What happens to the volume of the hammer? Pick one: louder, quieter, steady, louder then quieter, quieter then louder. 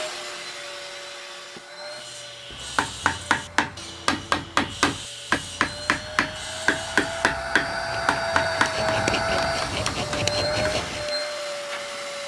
quieter.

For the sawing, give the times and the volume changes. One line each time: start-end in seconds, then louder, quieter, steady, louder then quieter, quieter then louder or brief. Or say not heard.
1.8-11.2 louder.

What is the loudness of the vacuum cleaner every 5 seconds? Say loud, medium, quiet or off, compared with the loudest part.
medium, loud, loud.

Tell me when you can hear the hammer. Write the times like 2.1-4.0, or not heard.
2.5-10.8.